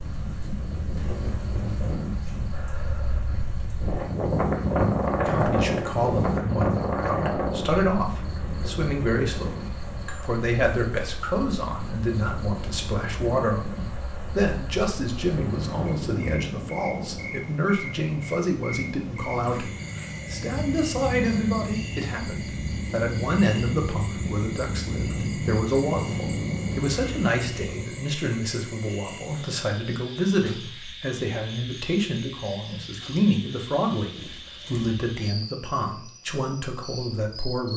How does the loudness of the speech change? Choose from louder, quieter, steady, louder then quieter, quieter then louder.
steady.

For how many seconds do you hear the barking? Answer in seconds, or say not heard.
not heard.